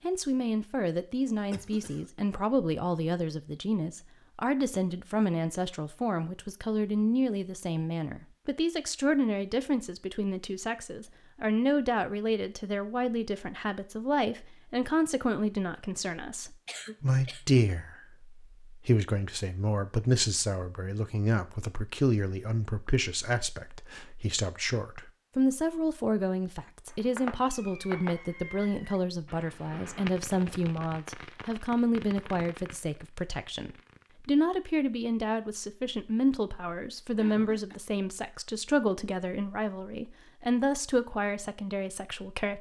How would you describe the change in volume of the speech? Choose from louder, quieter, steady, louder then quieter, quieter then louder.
steady.